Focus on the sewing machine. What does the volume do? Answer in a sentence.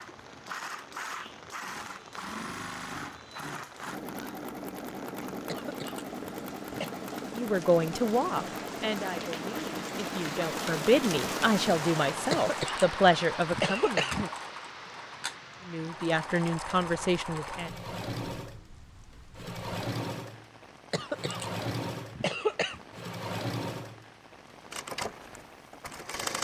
The loudness of the sewing machine stays about the same.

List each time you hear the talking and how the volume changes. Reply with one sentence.
The talking can be heard from 7.3 to 14.1 s, getting quieter then louder; and briefly from 15.7 to 17.7 s.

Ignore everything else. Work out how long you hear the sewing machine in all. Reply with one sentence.
You can hear the sewing machine for 26 seconds altogether.